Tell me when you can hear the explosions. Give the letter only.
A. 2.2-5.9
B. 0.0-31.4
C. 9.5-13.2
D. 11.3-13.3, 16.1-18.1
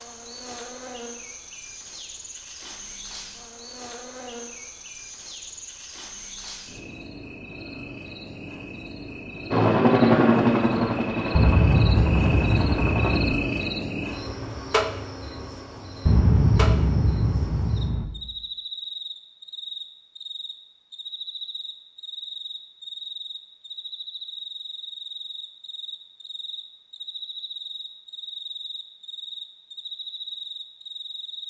D.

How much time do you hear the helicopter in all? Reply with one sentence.
You can hear the helicopter for 4 seconds altogether.